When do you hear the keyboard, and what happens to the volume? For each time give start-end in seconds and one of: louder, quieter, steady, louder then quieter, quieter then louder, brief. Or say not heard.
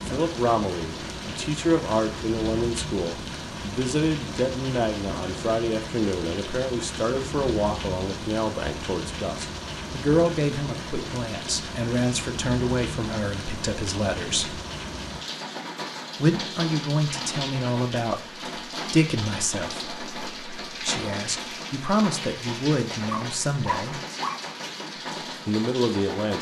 not heard.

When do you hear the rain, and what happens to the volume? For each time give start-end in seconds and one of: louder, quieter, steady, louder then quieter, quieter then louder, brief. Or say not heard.
0.0-26.3 steady.